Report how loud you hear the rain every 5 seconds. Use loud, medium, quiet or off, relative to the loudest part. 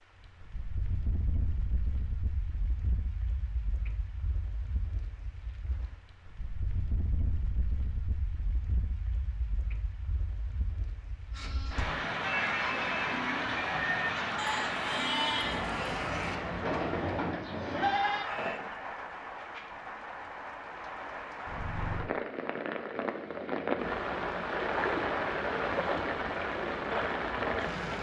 quiet, quiet, loud, medium, loud, loud.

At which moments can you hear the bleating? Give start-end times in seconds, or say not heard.
11.3-18.6.